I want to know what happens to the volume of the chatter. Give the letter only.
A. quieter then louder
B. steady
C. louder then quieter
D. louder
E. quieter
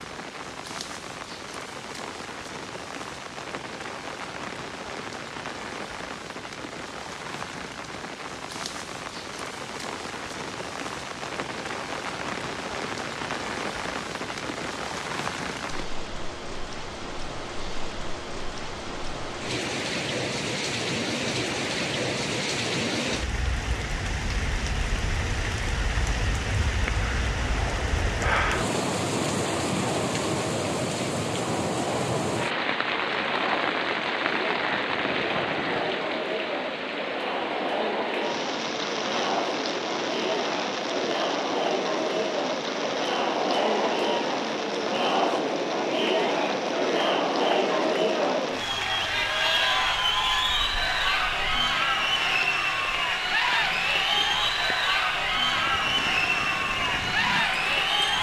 D.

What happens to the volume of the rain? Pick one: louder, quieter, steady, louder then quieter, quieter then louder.
louder then quieter.